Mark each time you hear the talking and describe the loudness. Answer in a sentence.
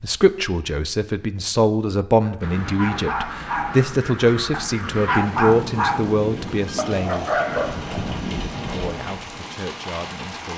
The talking can be heard from 0.0 to 10.5 s, getting quieter.